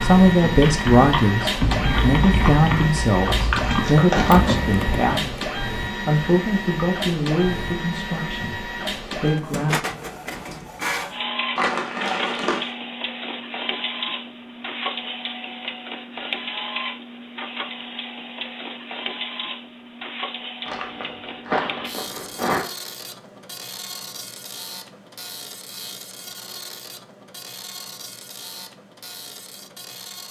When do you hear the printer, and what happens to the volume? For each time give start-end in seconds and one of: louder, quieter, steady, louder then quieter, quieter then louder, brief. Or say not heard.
0.0-30.2 quieter.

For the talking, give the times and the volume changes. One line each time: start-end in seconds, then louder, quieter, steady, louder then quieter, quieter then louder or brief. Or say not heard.
0.0-9.8 quieter.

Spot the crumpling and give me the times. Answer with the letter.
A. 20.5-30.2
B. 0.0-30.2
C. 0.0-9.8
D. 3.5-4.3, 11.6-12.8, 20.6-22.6
D.